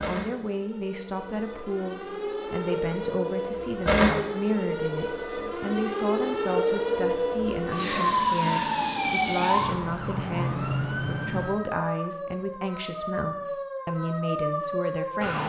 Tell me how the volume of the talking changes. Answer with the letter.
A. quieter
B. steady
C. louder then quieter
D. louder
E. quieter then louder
B.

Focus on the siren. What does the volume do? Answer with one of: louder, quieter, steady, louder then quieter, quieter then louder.
louder then quieter.